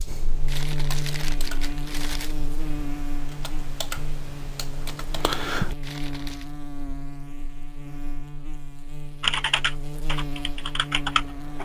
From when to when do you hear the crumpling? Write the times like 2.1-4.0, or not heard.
0.5-2.4, 5.8-6.5.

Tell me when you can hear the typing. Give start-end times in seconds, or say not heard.
0.1-5.8, 9.2-11.5.